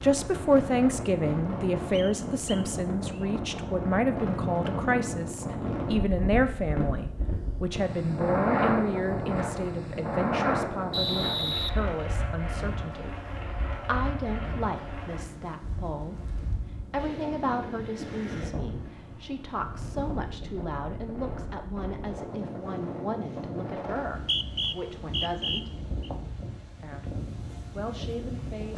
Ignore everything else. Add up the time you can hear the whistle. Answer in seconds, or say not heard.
4 s.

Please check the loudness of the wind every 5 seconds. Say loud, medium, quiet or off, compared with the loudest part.
loud, loud, loud, medium, medium, medium.